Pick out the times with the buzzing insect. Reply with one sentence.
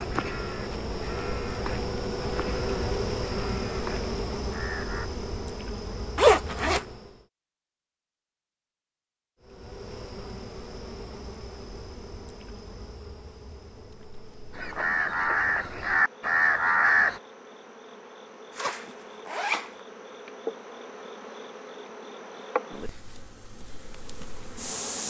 The buzzing insect can be heard from 0.0 to 7.2 s and from 9.4 to 25.0 s.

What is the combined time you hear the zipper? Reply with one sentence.
You can hear the zipper for 2 seconds altogether.